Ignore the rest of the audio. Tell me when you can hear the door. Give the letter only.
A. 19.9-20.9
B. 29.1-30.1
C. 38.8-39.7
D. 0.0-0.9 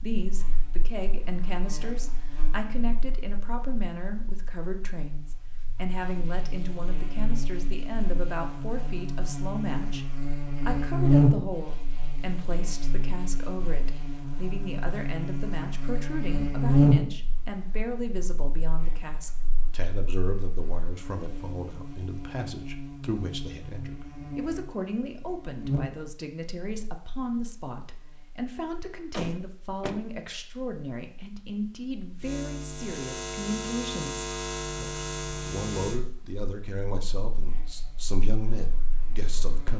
B.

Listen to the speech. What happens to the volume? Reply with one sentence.
The volume of the speech stays about the same.